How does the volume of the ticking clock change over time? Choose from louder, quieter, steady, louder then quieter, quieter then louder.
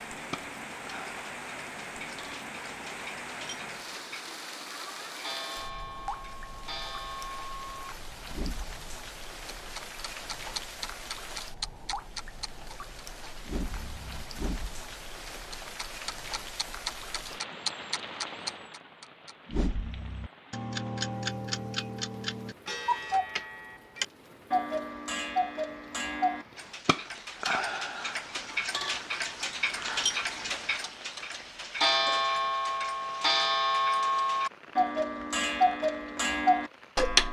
louder.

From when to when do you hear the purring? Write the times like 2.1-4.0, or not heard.
not heard.